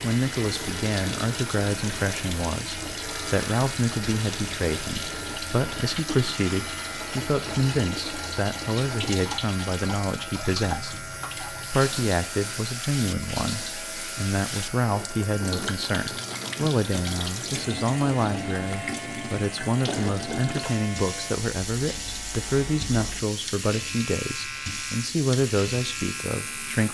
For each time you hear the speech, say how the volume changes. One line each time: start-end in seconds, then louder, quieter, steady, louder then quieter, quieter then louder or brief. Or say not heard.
0.0-26.9 steady.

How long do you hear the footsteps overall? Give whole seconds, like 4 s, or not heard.
not heard.